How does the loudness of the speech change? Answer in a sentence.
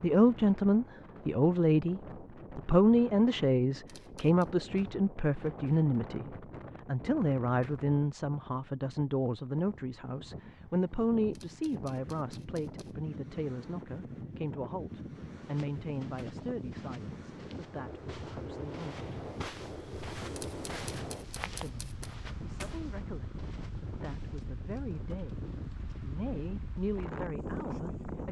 The volume of the speech goes down.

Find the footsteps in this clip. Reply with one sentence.
You can hear the footsteps from 15.3 to 24.5 s.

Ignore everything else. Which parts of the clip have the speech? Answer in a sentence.
You can hear the speech from 0.0 to 19.1 s and from 21.4 to 28.2 s.